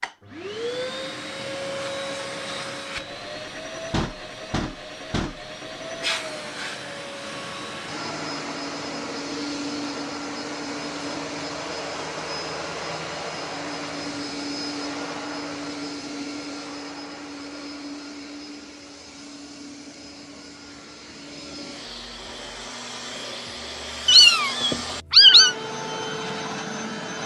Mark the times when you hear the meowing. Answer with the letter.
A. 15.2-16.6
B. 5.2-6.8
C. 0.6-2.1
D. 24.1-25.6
D.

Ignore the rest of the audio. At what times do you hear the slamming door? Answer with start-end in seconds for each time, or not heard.
not heard.